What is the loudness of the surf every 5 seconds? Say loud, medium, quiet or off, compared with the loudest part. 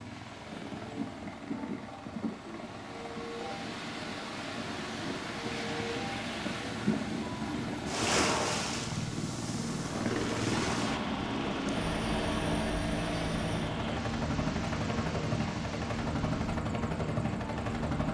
medium, loud, loud, medium.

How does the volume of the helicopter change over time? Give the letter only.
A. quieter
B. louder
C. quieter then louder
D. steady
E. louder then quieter
B.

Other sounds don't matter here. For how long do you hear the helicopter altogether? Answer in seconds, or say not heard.
18 s.